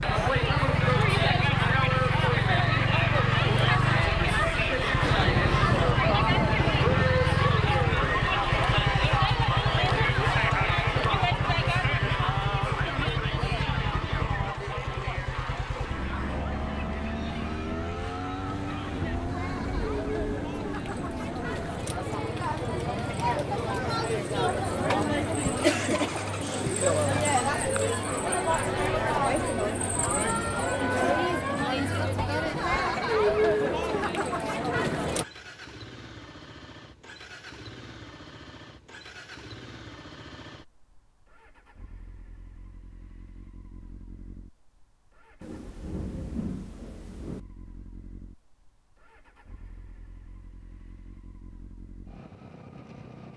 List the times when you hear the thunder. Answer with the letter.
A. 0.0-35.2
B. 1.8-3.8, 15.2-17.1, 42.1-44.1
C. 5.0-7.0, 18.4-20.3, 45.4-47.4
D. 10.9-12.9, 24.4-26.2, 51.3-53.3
C.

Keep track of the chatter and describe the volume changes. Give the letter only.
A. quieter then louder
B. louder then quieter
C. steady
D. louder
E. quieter
A.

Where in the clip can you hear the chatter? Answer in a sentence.
You can hear the chatter from 0.0 to 35.2 s.